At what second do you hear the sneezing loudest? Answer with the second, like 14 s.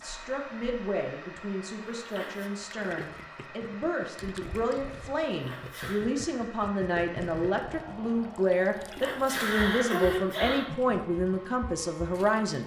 10 s.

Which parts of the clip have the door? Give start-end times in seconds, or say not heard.
not heard.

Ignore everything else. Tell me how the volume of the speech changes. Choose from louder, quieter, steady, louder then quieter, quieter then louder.
louder.